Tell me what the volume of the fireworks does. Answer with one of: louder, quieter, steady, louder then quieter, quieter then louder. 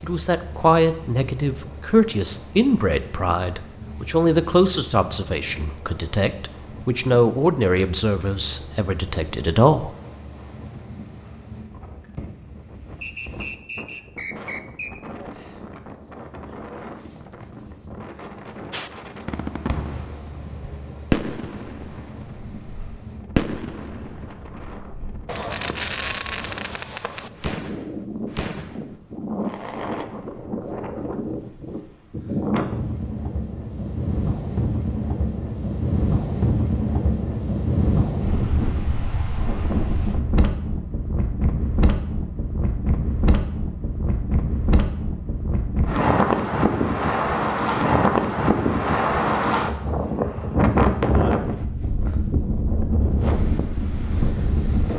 quieter.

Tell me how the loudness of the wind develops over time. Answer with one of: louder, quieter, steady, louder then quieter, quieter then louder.
louder.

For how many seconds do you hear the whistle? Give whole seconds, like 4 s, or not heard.
2 s.